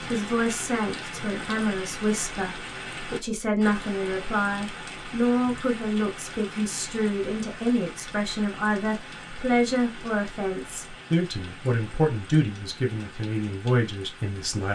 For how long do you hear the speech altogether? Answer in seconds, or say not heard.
15 s.